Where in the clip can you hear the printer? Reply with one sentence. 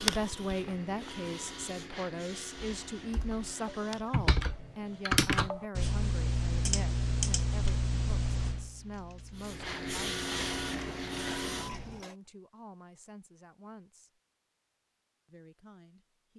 You can hear the printer from 0.0 to 5.2 s and from 9.3 to 12.2 s.